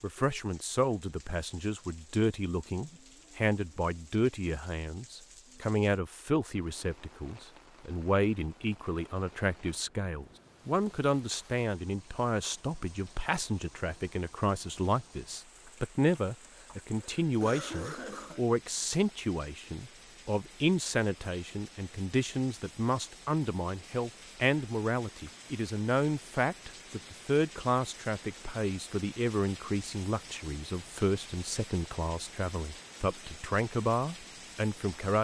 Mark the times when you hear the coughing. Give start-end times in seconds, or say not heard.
16.5-18.4.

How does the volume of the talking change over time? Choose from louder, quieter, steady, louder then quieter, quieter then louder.
steady.